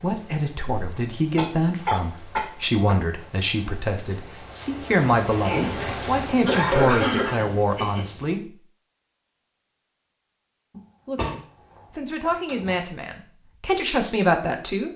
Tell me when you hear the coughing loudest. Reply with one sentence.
The loudest moment of the coughing is at 7 seconds.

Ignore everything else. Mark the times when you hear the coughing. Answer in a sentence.
You can hear the coughing from 1.4 to 3.0 s, from 5.5 to 8.1 s, from 10.7 to 11.3 s and from 12.2 to 12.8 s.